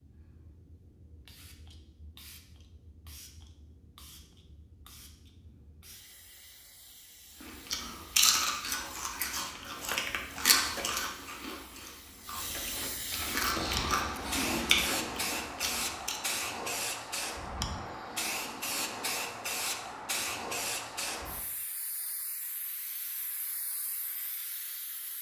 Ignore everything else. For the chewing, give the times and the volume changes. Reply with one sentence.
The chewing can be heard from 7.4 to 16.2 s, getting quieter then louder.